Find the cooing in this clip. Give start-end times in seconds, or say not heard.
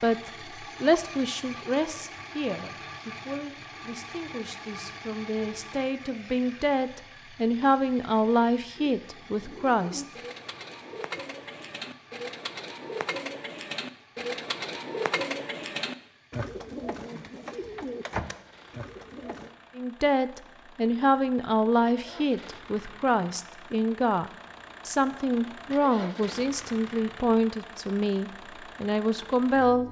8.8-19.6.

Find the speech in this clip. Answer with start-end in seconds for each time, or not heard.
0.0-10.1, 19.8-29.8.